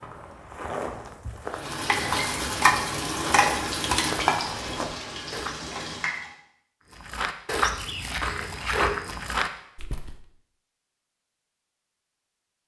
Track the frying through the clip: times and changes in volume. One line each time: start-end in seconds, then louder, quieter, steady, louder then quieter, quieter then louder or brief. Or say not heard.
1.5-6.3 quieter.